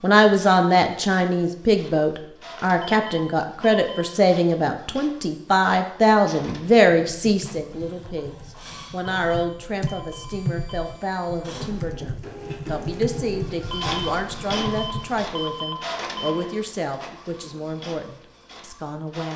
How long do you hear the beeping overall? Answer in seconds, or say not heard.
6 s.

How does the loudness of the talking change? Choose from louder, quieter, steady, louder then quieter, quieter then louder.
quieter.